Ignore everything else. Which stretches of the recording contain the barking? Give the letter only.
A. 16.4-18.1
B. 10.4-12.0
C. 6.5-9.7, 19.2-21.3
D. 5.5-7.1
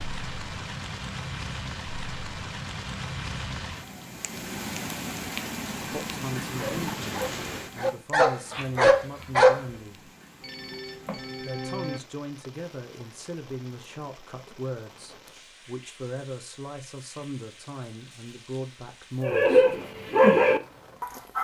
C.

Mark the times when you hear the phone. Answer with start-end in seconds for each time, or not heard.
10.4-12.0.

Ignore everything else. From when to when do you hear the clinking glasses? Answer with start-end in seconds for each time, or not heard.
not heard.